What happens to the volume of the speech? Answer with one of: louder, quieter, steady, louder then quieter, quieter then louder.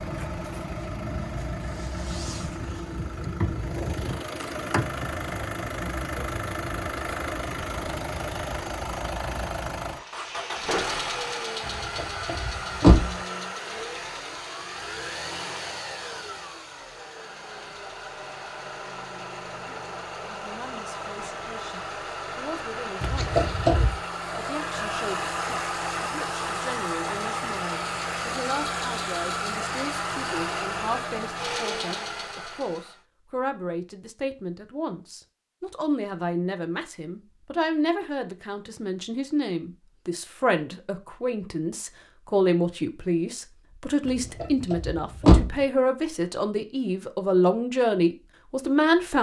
louder.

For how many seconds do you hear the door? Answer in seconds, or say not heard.
4 s.